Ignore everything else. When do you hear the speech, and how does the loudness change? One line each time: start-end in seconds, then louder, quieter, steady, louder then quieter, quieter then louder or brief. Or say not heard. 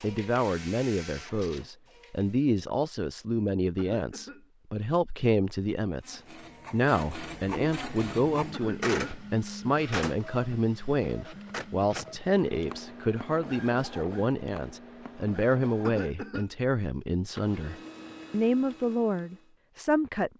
0.0-20.3 steady.